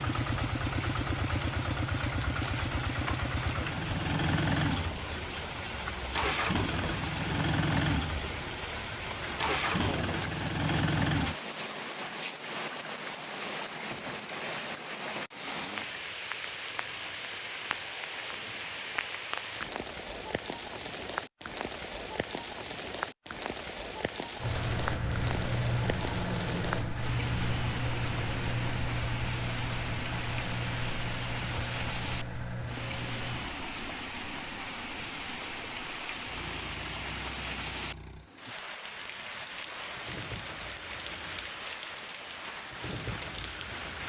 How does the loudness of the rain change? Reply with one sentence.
The volume of the rain stays about the same.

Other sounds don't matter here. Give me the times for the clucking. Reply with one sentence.
You can't hear the clucking here.